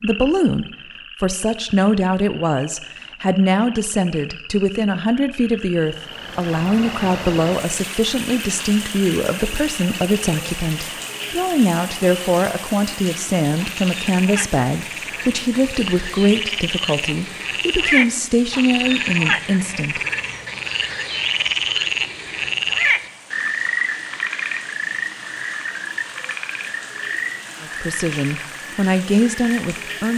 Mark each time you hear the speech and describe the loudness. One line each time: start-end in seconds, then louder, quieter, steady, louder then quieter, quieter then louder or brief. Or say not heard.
0.0-20.0 steady
27.6-30.1 brief.